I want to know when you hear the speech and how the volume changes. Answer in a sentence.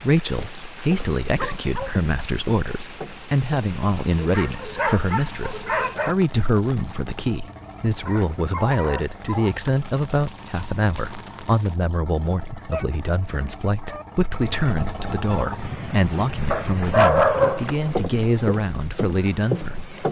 You can hear the speech from 0.0 to 19.9 s, at a steady volume.